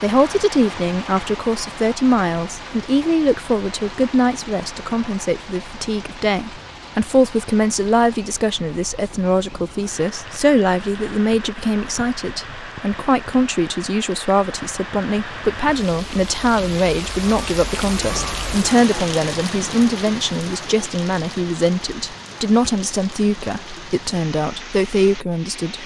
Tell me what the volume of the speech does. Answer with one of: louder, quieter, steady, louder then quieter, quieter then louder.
steady.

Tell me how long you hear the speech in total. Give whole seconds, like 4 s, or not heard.
26 s.